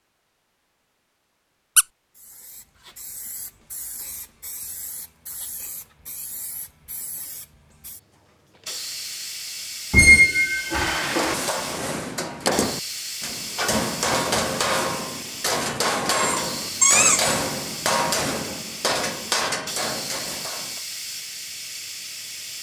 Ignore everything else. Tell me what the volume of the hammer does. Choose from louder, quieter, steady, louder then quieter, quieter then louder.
steady.